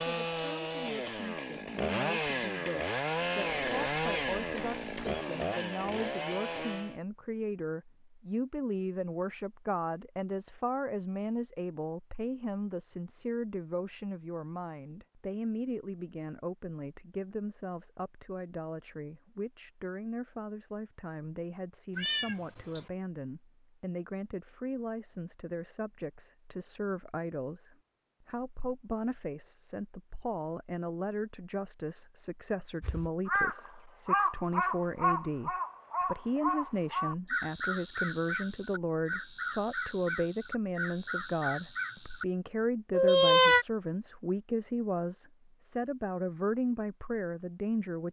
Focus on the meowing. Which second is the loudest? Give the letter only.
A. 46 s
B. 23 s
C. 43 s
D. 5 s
C.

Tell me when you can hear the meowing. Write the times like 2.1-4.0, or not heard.
3.6-5.2, 21.9-22.9, 42.9-43.6.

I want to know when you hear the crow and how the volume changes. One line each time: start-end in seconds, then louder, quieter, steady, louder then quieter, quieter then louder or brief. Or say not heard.
32.8-42.2 quieter.